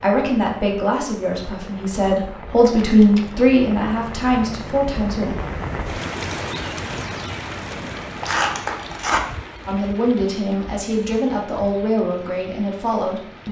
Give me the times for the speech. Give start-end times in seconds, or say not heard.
0.0-5.3, 9.7-13.4.